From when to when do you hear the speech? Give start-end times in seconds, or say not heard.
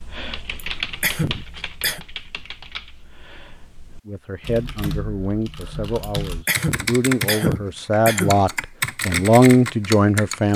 4.0-10.5.